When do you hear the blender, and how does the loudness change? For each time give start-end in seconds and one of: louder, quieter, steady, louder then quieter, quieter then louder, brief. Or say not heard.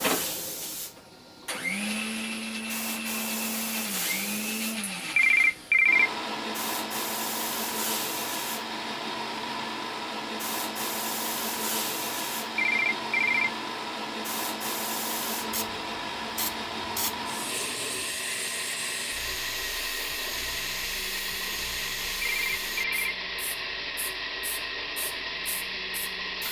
0.0-26.4 steady.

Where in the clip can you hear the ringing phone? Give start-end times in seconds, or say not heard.
5.2-6.1, 12.6-13.5, 22.2-23.1.